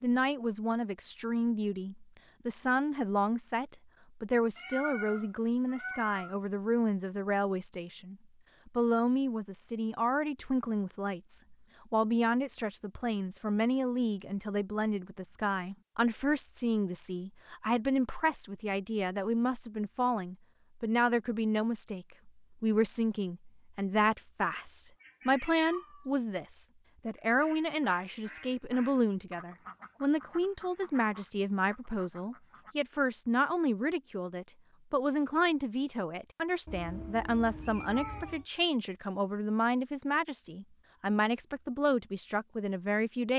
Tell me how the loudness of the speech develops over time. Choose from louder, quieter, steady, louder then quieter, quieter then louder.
steady.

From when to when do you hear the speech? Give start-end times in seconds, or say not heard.
0.0-43.3.